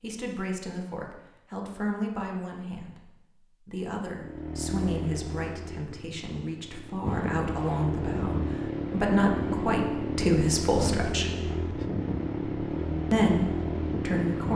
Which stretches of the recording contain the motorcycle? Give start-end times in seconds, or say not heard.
4.2-14.5.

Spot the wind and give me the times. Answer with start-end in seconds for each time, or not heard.
7.0-14.5.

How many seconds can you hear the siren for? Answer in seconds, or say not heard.
not heard.